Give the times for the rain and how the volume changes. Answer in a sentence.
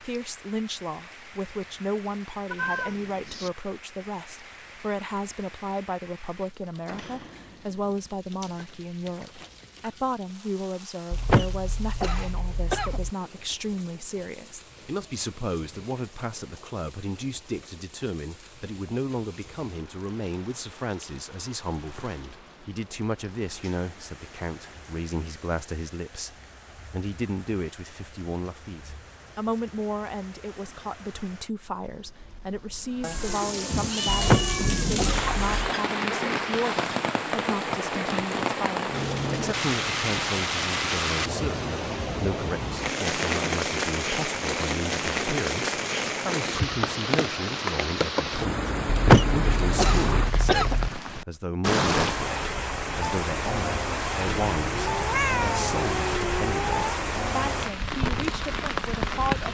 The rain can be heard from 0.0 to 59.4 s, getting louder.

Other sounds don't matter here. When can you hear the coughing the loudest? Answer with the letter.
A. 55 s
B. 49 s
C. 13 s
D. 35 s
B.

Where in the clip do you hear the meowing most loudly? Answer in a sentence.
The loudest moment of the meowing is at 55 seconds.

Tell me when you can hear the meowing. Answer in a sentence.
You can hear the meowing from 2.5 to 3.5 s, from 33.0 to 35.7 s and from 54.2 to 57.0 s.